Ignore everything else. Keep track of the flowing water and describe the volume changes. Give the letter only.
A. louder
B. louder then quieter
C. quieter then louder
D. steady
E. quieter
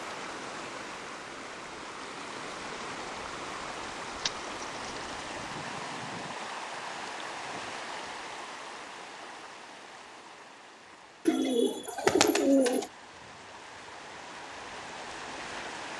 C.